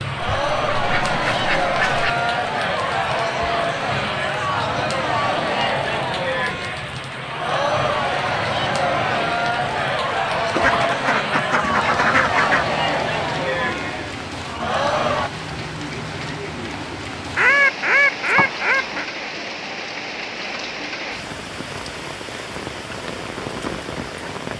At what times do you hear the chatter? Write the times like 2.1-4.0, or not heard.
0.0-15.3.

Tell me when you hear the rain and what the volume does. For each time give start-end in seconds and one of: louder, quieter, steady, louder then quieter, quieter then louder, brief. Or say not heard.
0.0-24.5 steady.